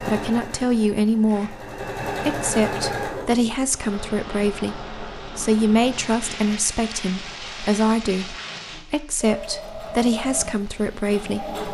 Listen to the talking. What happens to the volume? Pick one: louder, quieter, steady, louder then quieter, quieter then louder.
steady.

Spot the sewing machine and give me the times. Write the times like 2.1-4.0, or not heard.
0.0-3.7, 9.2-11.6.